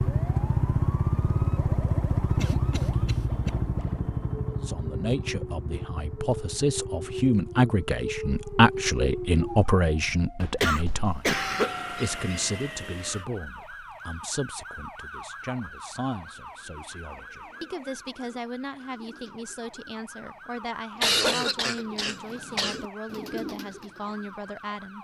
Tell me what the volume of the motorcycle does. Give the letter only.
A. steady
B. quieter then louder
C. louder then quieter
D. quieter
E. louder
D.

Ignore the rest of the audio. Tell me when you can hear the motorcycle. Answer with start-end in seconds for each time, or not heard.
0.0-10.2.